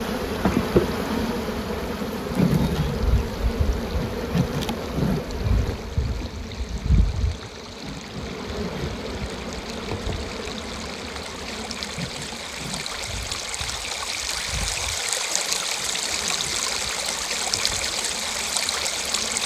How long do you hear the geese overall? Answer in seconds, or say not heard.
not heard.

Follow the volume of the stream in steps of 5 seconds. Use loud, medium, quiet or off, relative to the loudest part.
quiet, quiet, medium, loud.